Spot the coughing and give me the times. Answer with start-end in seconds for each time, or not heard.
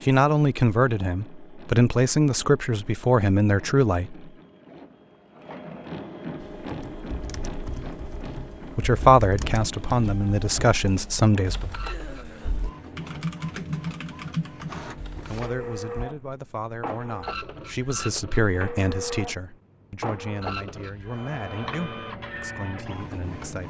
11.8-12.7.